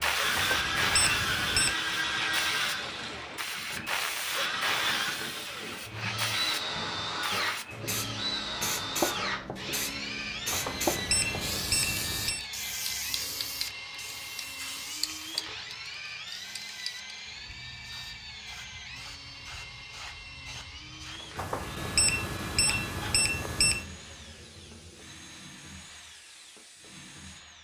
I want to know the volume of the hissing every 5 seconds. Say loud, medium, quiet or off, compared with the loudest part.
loud, loud, loud, medium, quiet, quiet.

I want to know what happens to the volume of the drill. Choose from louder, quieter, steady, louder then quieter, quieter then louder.
quieter.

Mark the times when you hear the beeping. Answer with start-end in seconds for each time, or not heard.
0.3-1.8, 10.5-12.4, 21.4-23.9.